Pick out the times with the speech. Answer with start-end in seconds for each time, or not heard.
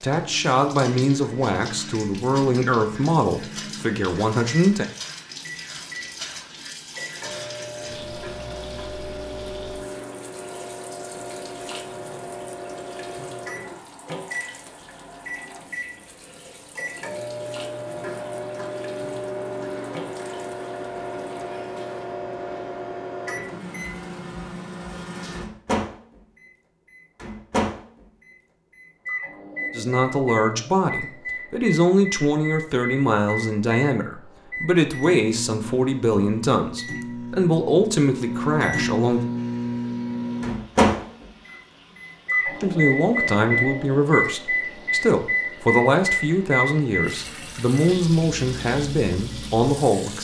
0.0-4.8, 29.8-39.2, 42.5-50.1.